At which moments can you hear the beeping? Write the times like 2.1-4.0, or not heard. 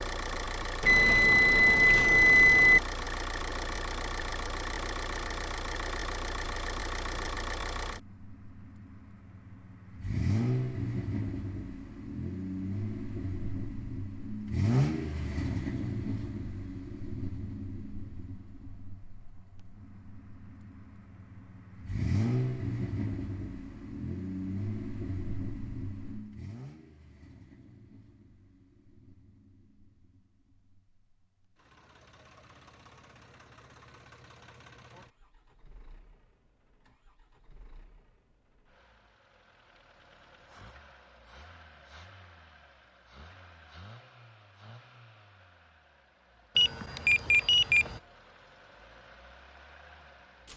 0.8-2.8, 46.5-48.0.